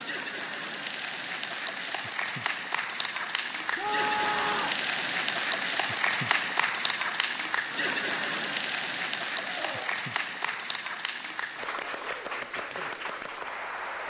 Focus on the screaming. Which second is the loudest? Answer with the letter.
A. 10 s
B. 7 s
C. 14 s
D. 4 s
D.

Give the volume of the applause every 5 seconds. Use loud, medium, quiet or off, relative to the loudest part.
loud, loud, medium.